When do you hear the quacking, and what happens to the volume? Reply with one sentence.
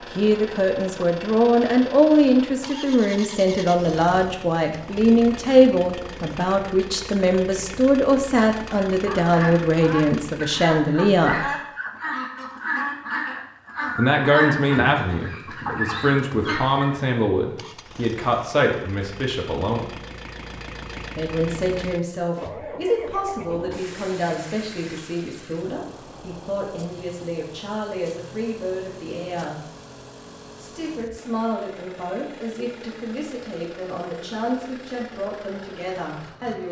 The quacking can be heard from 8.9 to 17.0 s, at a steady volume.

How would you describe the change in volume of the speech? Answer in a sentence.
The loudness of the speech goes down.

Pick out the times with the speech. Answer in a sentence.
You can hear the speech from 0.1 to 11.5 s, from 13.9 to 19.9 s, from 21.1 to 29.6 s and from 30.6 to 36.6 s.